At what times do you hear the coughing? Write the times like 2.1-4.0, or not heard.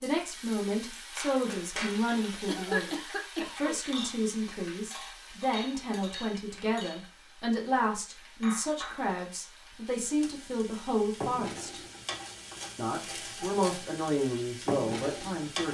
2.5-3.8.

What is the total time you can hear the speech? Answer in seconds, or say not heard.
15 s.